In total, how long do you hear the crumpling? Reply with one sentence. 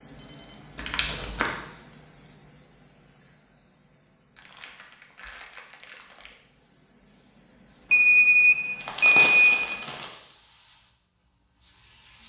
You can hear the crumpling for 4 seconds altogether.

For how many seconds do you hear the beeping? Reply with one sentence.
You can hear the beeping for 3 seconds altogether.